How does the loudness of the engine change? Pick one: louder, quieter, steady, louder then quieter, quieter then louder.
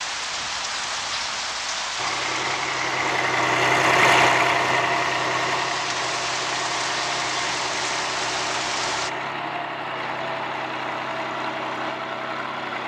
quieter.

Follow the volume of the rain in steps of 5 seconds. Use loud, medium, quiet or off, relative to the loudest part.
loud, loud, off.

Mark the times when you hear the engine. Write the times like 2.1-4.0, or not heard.
1.9-12.8.